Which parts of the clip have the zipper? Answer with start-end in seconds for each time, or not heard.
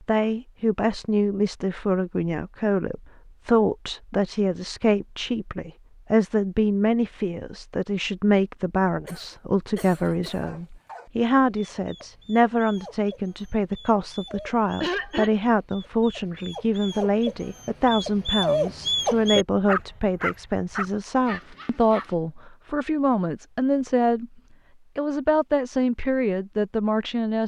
not heard.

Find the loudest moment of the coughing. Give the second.
15 s.